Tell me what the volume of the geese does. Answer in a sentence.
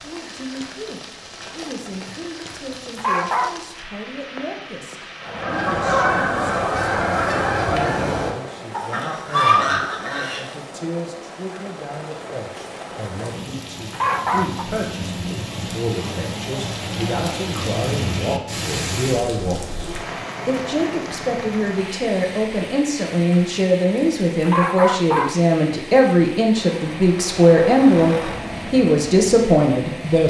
The loudness of the geese goes down, then up.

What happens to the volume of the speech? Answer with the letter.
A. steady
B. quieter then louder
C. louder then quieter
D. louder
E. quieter
D.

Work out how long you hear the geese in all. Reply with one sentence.
You can hear the geese for 5 seconds altogether.